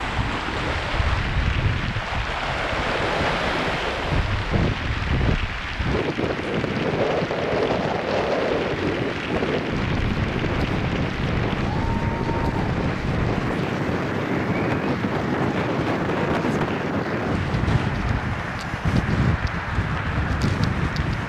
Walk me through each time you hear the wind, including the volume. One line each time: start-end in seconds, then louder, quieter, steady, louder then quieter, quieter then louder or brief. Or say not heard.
0.0-21.2 steady.